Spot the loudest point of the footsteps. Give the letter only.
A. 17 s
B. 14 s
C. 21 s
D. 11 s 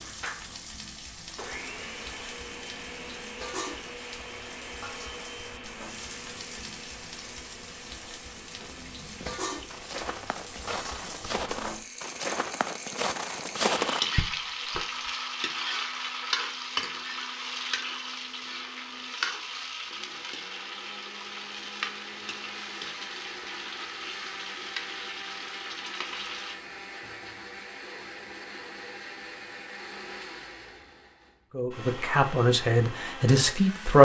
B.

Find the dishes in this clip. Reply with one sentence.
You can't hear the dishes here.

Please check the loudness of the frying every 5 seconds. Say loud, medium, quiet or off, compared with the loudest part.
medium, medium, loud, loud, medium, medium, off.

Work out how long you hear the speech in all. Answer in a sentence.
The speech can be heard for 2 seconds in total.